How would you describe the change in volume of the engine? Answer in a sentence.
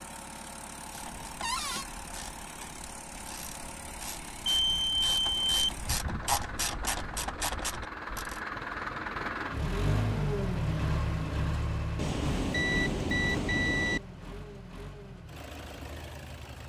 The volume of the engine goes up, then down.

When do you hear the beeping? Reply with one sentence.
You can hear the beeping from 4.5 to 6.5 s and from 11.9 to 14.0 s.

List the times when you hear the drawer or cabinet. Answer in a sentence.
You can hear the drawer or cabinet from 1.4 to 1.9 s.